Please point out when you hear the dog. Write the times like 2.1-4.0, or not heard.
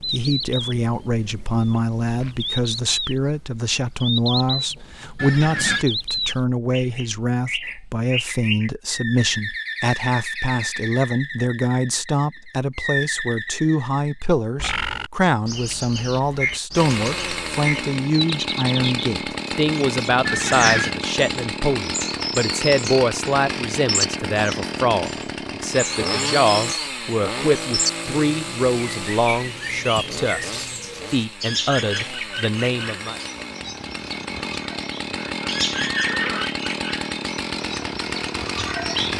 not heard.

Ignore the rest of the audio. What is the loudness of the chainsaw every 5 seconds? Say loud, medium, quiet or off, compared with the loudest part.
off, off, off, loud, loud, loud, medium, loud.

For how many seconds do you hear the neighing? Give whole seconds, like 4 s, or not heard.
2 s.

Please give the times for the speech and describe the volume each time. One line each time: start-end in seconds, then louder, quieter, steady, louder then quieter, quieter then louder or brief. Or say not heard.
0.0-33.1 steady.